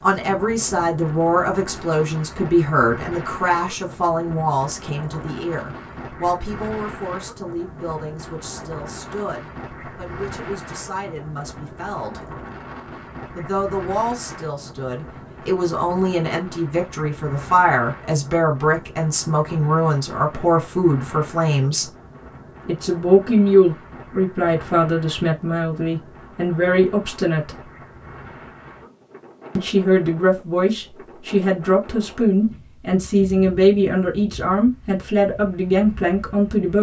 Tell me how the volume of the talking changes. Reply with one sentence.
The loudness of the talking goes down, then up.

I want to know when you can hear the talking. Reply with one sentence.
You can hear the talking from 0.0 to 12.2 s, from 13.3 to 21.9 s, from 22.6 to 27.5 s and from 29.6 to 36.7 s.